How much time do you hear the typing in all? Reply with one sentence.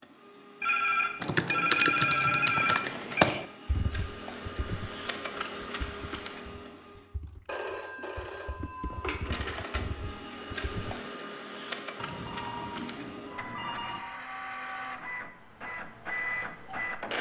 The typing can be heard for 10 seconds in total.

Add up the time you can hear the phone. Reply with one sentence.
You can hear the phone for 7 seconds altogether.